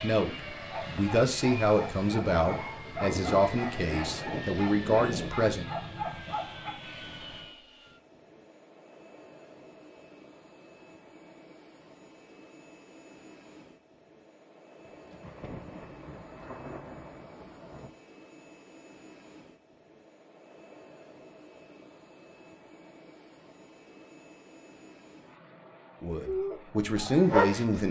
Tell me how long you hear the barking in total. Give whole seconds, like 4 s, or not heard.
8 s.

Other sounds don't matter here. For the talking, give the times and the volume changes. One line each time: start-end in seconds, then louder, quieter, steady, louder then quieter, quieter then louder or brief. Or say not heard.
0.0-5.7 steady
26.0-27.8 brief.